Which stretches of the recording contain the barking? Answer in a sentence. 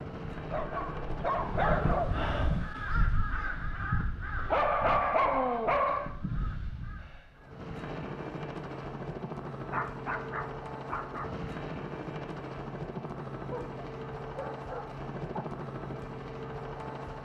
You can hear the barking from 0.5 to 2.1 s, from 4.5 to 6.1 s, from 9.7 to 11.3 s and from 13.5 to 15.4 s.